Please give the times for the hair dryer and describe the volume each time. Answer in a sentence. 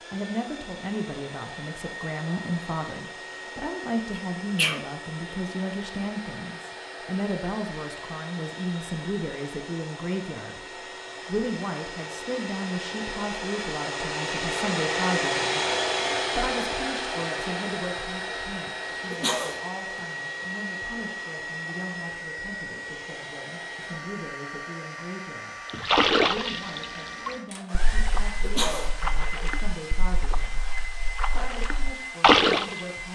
You can hear the hair dryer from 0.0 to 33.0 s, getting louder then quieter.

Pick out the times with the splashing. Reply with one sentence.
You can hear the splashing from 25.6 to 32.8 s.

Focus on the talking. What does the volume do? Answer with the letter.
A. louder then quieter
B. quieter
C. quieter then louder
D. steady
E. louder
B.